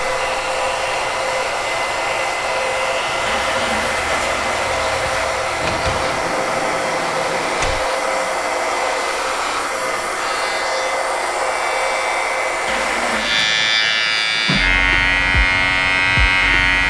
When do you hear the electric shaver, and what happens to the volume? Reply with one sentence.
The electric shaver can be heard from 0.0 to 16.8 s, getting louder.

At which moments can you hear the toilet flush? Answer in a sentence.
The toilet flush can be heard from 3.2 to 5.2 s and from 12.7 to 13.6 s.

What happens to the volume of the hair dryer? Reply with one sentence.
The volume of the hair dryer goes down.